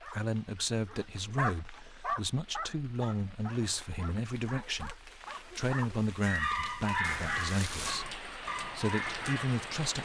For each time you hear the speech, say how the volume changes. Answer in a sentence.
You can hear the speech from 0.0 to 9.9 s, at a steady volume.